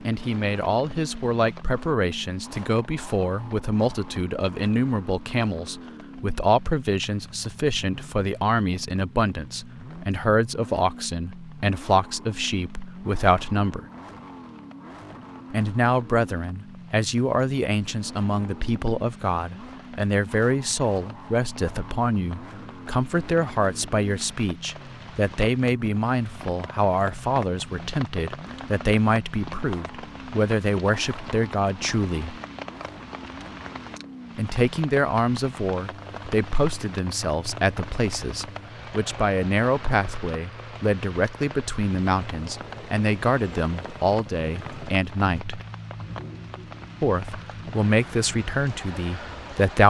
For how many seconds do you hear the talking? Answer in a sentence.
You can hear the talking for 45 seconds altogether.